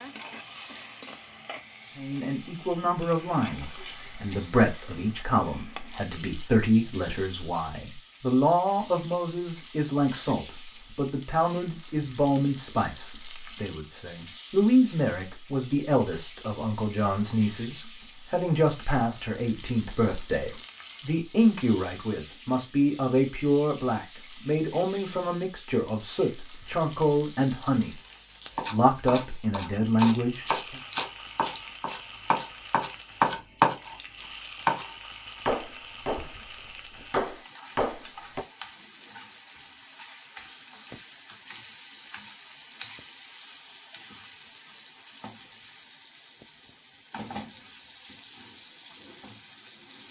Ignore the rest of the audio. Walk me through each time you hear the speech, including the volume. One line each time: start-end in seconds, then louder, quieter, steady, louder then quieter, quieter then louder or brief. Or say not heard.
1.9-27.9 steady
28.7-30.8 brief.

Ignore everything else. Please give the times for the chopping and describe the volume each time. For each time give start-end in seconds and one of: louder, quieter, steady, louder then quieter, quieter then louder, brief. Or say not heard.
28.4-38.5 louder then quieter.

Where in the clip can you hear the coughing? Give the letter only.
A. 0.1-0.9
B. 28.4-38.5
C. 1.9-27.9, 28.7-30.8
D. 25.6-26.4
A.